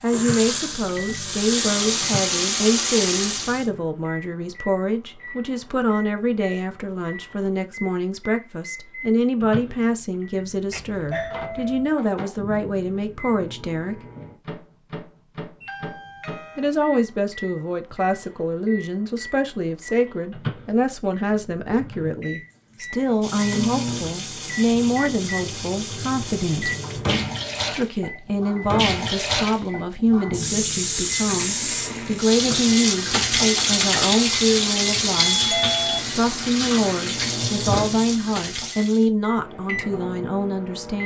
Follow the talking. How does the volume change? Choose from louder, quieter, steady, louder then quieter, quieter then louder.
steady.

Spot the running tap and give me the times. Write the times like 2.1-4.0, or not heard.
0.1-3.6, 22.8-39.0.